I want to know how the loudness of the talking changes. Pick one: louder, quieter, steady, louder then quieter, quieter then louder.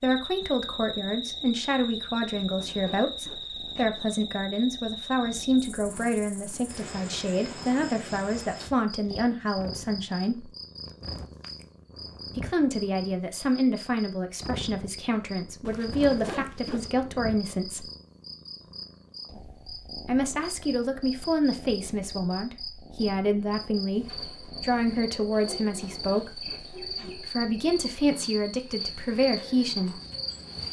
steady.